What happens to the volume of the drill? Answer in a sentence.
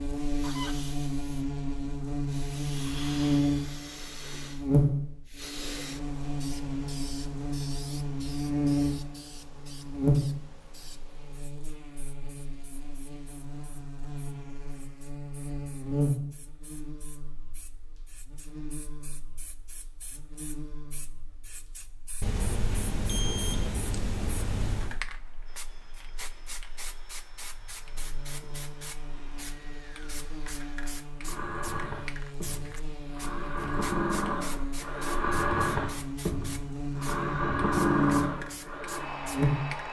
The volume of the drill goes up.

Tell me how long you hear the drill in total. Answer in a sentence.
The drill can be heard for 14 seconds in total.